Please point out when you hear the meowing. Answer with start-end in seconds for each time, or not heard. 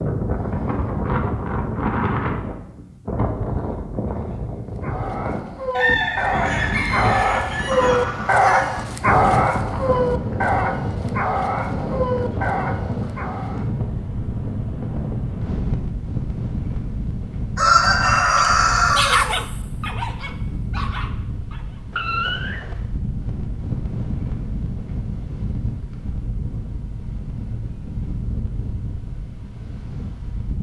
7.7-9.0, 21.9-22.9.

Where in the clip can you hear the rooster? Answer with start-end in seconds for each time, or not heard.
5.8-8.7, 17.6-19.2.